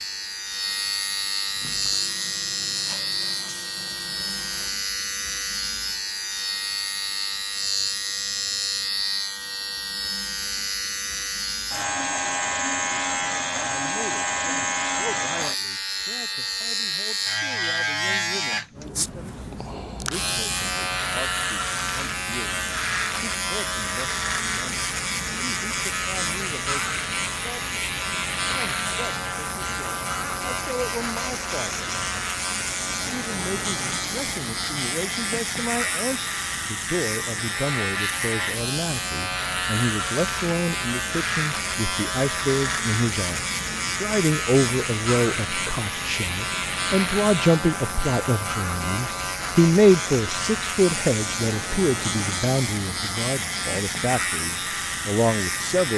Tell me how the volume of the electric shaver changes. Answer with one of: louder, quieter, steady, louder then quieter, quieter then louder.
steady.